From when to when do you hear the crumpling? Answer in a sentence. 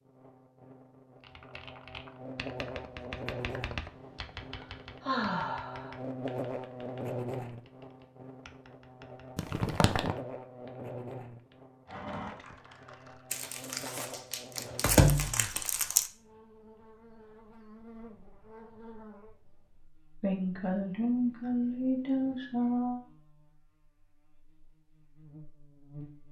The crumpling can be heard from 9.3 to 10.2 s and from 13.3 to 16.1 s.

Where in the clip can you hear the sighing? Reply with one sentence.
You can hear the sighing from 5.0 to 5.9 s, from 11.8 to 13.2 s and from 20.2 to 23.0 s.